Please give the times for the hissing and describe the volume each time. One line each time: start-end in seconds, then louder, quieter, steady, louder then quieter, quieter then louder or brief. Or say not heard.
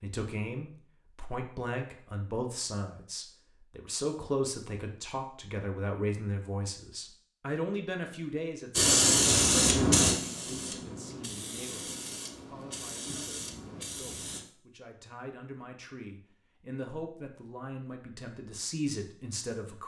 8.7-14.4 quieter.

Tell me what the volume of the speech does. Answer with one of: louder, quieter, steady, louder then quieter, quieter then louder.
quieter then louder.